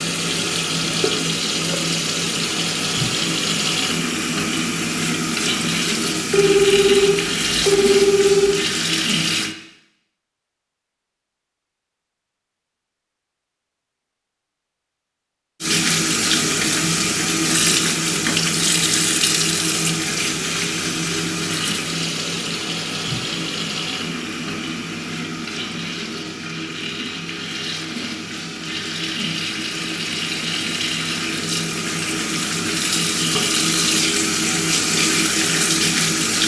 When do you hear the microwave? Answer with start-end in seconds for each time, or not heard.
not heard.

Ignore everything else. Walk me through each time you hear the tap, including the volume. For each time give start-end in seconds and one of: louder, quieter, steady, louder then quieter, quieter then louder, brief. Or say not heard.
0.0-9.6 steady
15.6-36.4 quieter then louder.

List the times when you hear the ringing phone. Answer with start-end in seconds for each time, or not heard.
6.3-8.6.